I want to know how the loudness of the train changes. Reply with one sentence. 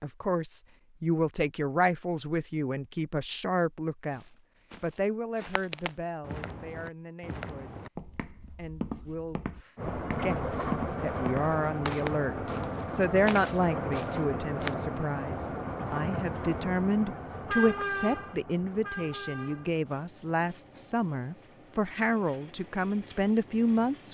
The volume of the train goes down.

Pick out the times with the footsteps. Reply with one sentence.
You can hear the footsteps from 4.1 to 14.8 s.